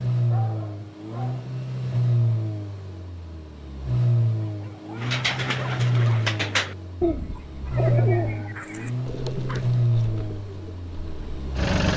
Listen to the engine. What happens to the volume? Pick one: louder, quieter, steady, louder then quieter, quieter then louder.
steady.